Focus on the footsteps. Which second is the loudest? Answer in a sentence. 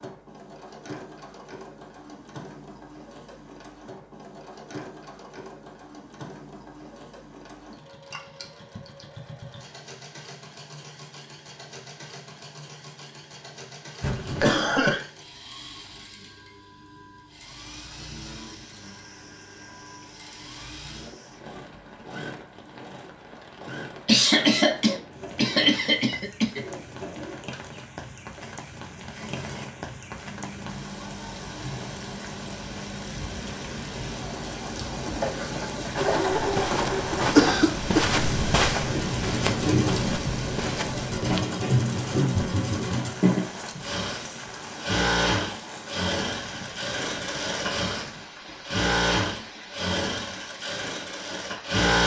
The volume of the footsteps peaks at 39 seconds.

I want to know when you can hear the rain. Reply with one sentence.
The rain can be heard from 17.4 to 51.8 s.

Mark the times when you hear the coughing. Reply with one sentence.
You can hear the coughing from 14.0 to 15.1 s, from 24.1 to 26.6 s and from 37.4 to 38.2 s.